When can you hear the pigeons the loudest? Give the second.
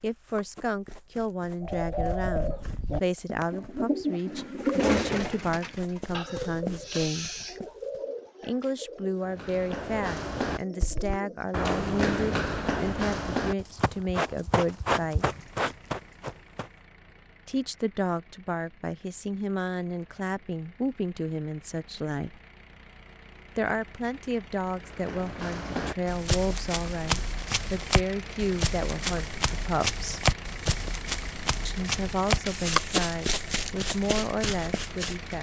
5 s.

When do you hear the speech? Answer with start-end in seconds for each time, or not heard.
0.0-7.3, 8.4-15.2, 17.4-22.4, 23.6-30.2, 31.6-35.3.